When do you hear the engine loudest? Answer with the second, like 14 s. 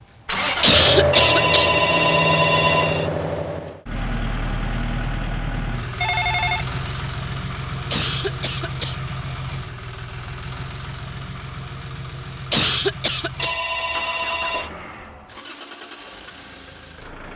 1 s.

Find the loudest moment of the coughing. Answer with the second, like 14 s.
1 s.